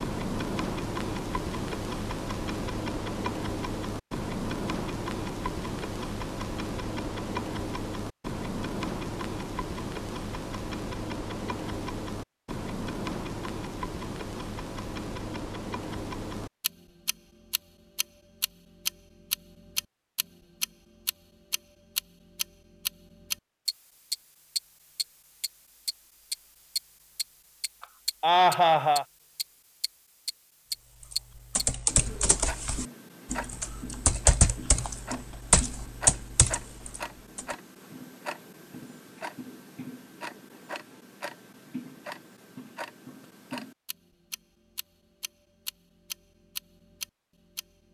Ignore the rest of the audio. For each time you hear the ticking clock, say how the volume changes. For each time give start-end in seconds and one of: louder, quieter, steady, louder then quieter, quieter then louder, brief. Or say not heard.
0.0-47.8 quieter.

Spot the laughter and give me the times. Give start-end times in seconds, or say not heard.
27.8-29.1.